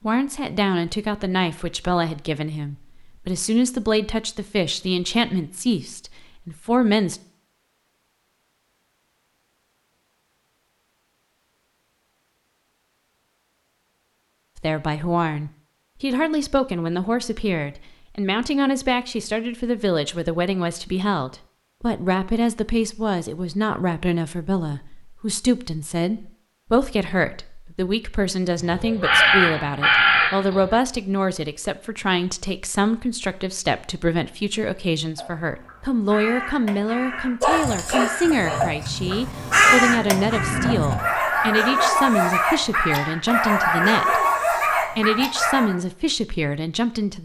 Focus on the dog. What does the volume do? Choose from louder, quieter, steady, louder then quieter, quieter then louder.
louder.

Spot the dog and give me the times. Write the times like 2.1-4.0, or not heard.
37.4-45.8.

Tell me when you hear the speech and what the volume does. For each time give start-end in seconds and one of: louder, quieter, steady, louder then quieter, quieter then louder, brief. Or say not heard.
0.0-7.2 steady
14.6-47.2 steady.